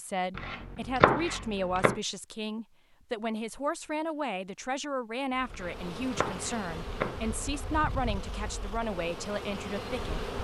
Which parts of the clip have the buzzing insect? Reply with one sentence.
You can hear the buzzing insect from 5.3 to 10.3 s.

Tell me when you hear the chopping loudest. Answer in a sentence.
The volume of the chopping peaks at 1 second.